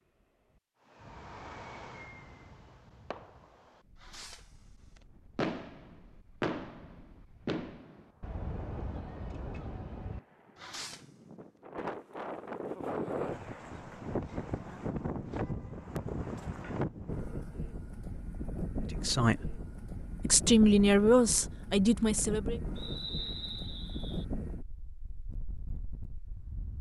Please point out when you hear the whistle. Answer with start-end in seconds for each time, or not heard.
22.8-24.2.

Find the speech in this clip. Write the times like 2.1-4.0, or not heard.
19.0-19.6, 20.2-22.6.